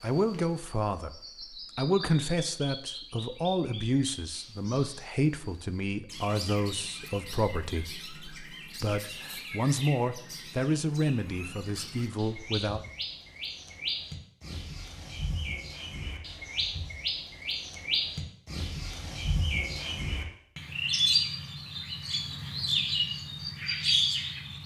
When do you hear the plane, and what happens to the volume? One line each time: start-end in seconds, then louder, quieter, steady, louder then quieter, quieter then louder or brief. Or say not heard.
not heard.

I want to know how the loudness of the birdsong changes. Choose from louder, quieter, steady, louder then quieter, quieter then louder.
louder.